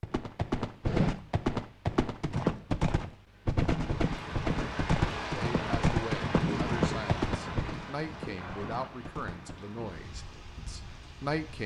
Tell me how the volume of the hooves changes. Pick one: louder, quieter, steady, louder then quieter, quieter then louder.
quieter.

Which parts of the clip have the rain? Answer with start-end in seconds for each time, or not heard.
3.6-11.6.